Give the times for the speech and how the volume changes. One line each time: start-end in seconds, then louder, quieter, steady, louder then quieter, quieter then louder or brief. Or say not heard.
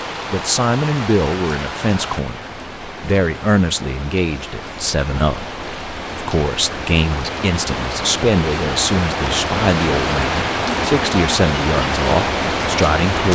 0.3-13.2 steady.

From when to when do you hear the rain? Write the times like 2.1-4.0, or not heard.
0.0-13.2.